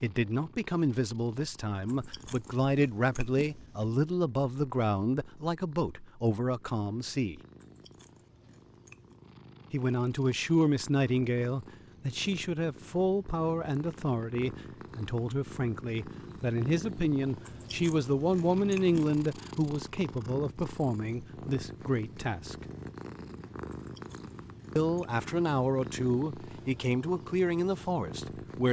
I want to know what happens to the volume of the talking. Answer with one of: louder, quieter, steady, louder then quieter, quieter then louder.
steady.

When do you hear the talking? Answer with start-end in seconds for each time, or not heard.
0.0-7.4, 9.7-22.6, 24.8-28.6.